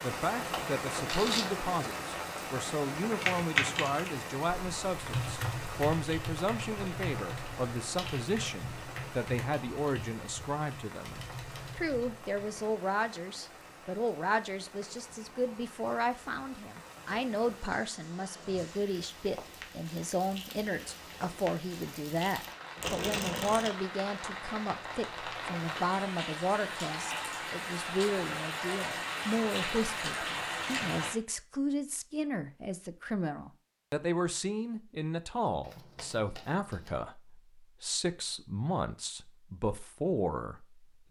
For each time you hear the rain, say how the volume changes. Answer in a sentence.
You can hear the rain from 0.0 to 31.1 s, getting quieter then louder.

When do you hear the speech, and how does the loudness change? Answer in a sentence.
You can hear the speech from 0.0 to 41.0 s, at a steady volume.